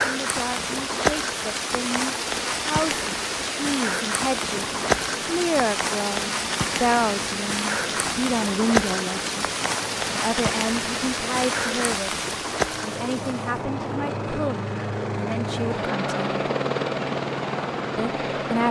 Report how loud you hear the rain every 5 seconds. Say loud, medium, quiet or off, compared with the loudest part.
loud, loud, loud, off.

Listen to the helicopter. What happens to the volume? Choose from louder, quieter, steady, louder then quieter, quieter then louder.
louder.